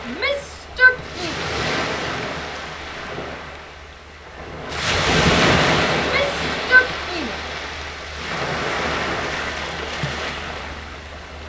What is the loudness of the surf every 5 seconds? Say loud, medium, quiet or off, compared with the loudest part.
medium, loud, medium.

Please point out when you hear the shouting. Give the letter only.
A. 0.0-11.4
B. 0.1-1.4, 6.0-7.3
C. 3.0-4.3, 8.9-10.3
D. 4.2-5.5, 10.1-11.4
B.